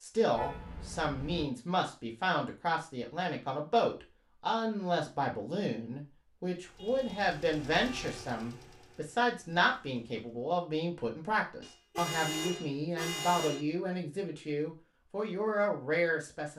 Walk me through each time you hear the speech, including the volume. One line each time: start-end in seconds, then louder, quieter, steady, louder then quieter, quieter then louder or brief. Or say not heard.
0.0-16.5 steady.